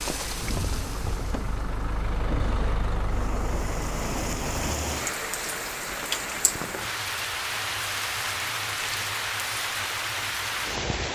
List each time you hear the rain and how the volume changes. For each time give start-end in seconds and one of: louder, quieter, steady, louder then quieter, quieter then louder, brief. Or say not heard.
0.0-11.1 louder.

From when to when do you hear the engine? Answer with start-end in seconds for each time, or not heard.
0.0-4.8.